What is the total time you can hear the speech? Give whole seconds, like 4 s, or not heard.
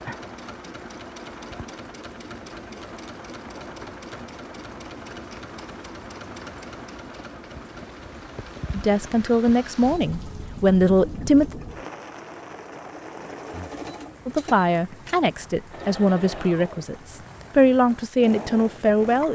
8 s.